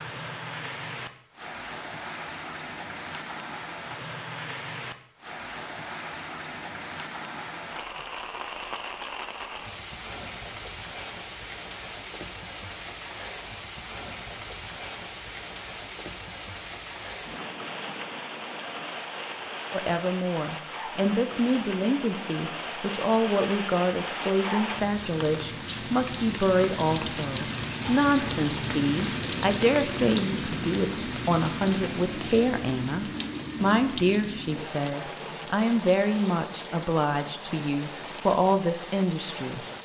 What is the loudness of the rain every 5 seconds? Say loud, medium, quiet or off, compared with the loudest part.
medium, medium, medium, medium, medium, loud, loud, medium.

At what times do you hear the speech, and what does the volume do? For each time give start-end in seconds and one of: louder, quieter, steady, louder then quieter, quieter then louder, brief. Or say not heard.
19.7-39.6 steady.